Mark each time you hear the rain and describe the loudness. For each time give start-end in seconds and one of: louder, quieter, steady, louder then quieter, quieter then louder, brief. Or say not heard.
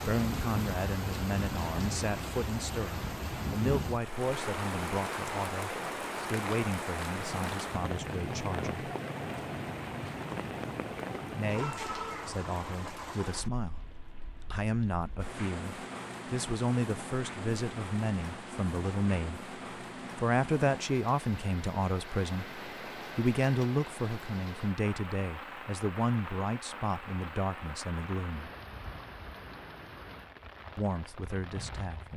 0.0-32.1 quieter.